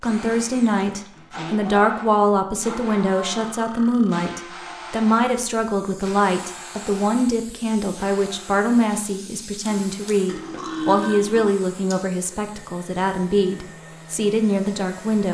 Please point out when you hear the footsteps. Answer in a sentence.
The footsteps can't be heard in this clip.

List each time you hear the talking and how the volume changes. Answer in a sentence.
The talking can be heard from 0.0 to 15.2 s, at a steady volume.